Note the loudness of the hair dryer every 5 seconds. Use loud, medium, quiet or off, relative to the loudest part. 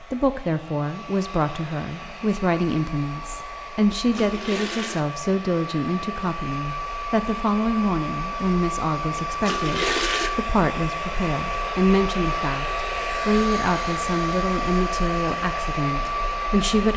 medium, loud, loud, loud.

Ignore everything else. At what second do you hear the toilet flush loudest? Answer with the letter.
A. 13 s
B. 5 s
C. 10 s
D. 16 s
C.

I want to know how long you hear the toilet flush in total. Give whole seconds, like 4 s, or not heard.
2 s.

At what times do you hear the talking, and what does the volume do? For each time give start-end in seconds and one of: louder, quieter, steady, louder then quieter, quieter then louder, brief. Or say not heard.
0.0-16.9 steady.